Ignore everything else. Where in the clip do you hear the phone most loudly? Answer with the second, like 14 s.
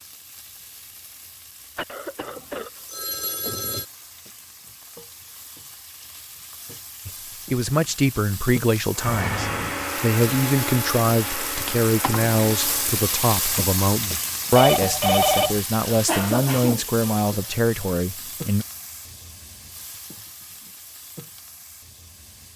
15 s.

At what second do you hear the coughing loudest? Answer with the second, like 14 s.
16 s.